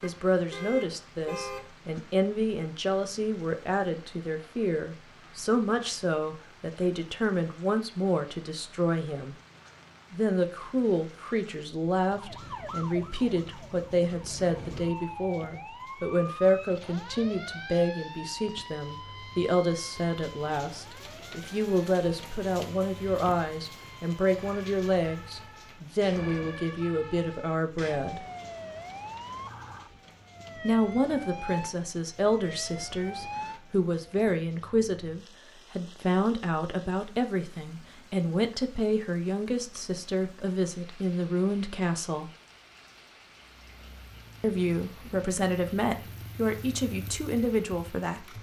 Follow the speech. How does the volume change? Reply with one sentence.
The loudness of the speech stays about the same.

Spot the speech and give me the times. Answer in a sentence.
The speech can be heard from 0.0 to 9.3 s, from 10.1 to 28.2 s, from 30.6 to 42.3 s and from 44.4 to 48.3 s.